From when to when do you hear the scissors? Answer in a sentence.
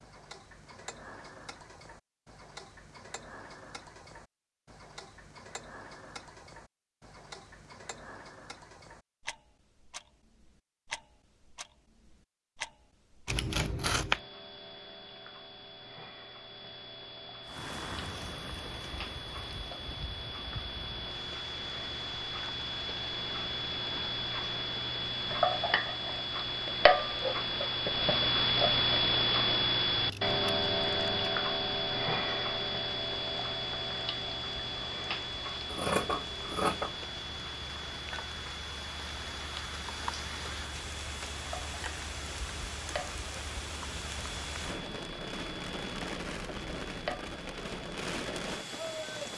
The scissors can be heard from 13.2 to 14.2 s, from 29.9 to 31.2 s and from 35.6 to 36.9 s.